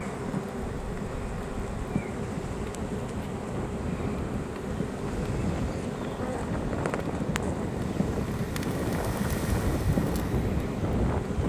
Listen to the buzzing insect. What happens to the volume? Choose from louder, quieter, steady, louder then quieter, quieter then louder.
steady.